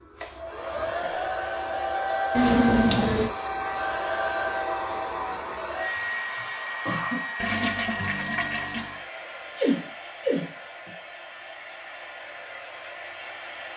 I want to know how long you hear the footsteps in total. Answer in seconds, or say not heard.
not heard.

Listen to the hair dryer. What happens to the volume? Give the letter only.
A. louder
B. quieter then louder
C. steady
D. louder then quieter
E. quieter
E.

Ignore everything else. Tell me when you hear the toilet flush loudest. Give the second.
3 s.